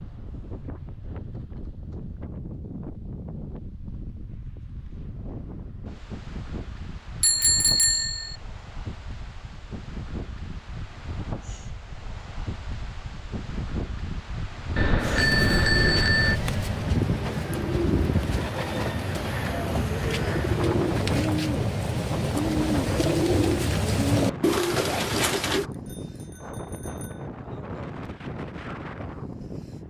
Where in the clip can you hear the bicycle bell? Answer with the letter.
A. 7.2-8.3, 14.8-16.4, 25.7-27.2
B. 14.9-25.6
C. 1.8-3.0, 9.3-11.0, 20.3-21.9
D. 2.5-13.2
A.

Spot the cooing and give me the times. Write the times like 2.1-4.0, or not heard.
14.9-25.6.